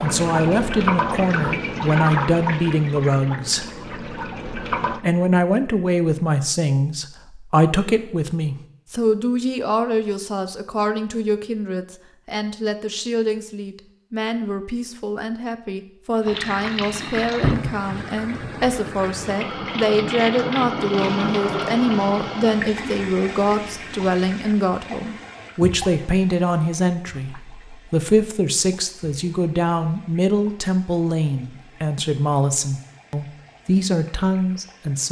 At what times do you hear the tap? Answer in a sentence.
You can hear the tap from 0.0 to 5.0 s and from 16.2 to 35.0 s.